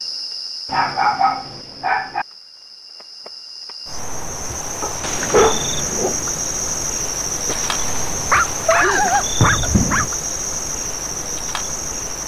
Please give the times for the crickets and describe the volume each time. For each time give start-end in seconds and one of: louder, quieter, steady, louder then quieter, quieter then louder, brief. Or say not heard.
0.0-12.2 louder.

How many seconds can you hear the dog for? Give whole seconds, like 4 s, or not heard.
5 s.